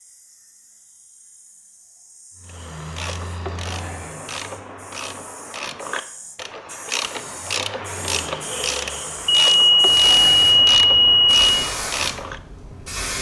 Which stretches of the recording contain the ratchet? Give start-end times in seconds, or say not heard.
2.5-12.4.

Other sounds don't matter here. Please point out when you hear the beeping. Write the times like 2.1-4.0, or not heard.
9.2-11.4.